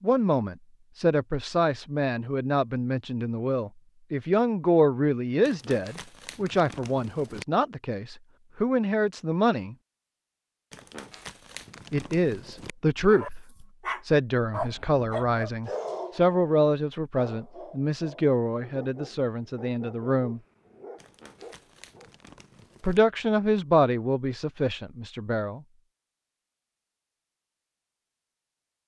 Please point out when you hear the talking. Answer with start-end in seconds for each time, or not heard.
0.0-9.8, 11.9-20.4, 22.8-25.6.